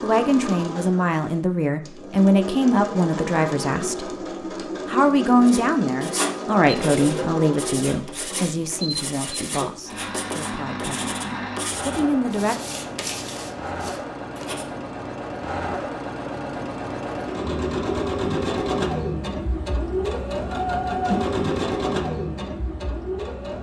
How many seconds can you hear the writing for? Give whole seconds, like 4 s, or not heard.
9 s.